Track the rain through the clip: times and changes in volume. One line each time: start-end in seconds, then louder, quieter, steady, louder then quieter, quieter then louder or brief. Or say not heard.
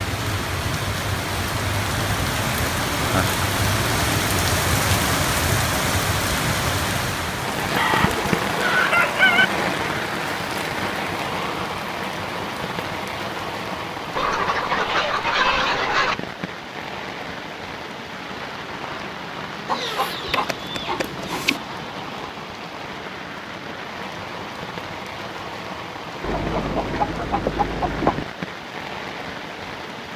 0.0-30.1 quieter.